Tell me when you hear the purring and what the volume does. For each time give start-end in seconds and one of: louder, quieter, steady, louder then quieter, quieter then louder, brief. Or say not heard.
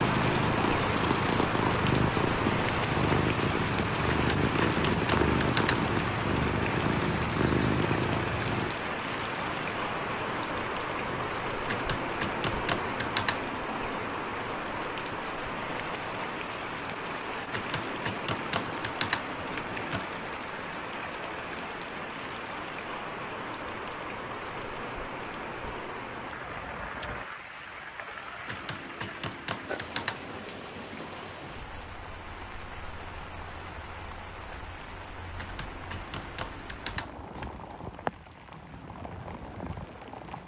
0.0-11.4 quieter.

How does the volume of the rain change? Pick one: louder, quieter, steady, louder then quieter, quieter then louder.
quieter.